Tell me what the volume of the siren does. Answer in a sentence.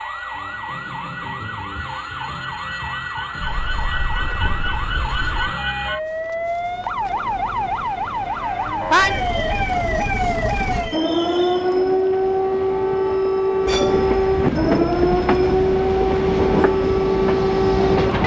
The loudness of the siren goes up.